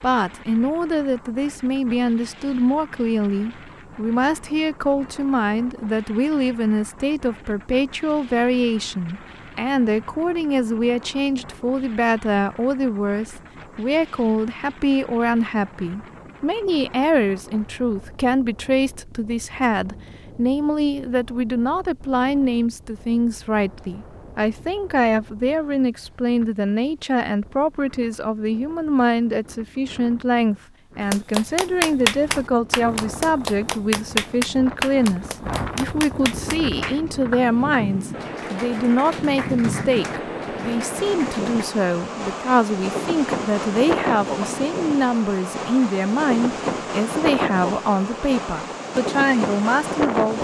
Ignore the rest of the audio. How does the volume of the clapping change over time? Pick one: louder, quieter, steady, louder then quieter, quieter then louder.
quieter.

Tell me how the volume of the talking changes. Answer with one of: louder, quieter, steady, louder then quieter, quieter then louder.
steady.